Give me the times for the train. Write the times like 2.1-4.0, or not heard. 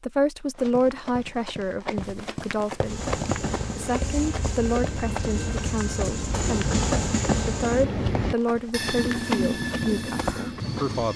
2.8-11.1.